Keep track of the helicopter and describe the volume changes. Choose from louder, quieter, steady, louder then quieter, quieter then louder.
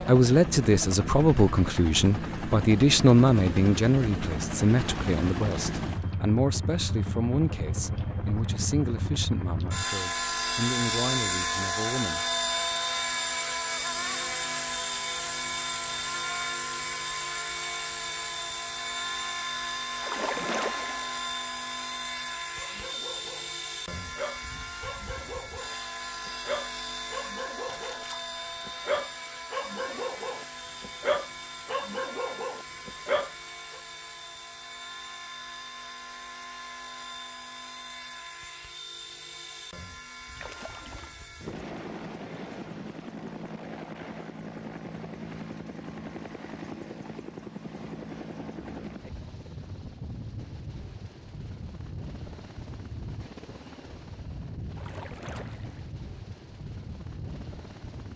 quieter.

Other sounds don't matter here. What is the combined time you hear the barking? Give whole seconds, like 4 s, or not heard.
11 s.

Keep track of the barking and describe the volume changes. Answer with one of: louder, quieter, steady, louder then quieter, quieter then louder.
louder.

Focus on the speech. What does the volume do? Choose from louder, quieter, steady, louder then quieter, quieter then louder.
quieter.